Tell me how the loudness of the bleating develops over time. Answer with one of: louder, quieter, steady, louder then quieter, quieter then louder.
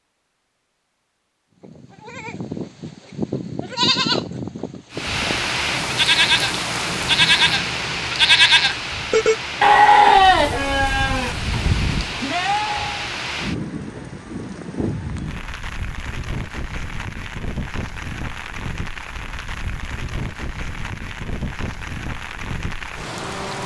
louder then quieter.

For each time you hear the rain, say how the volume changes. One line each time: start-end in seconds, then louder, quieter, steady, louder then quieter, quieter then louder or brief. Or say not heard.
4.9-23.6 quieter.